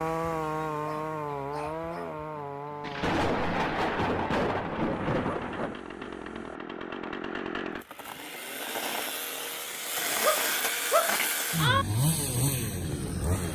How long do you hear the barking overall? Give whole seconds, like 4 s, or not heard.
5 s.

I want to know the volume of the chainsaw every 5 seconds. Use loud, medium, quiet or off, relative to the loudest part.
loud, medium, loud.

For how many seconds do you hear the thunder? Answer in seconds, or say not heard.
3 s.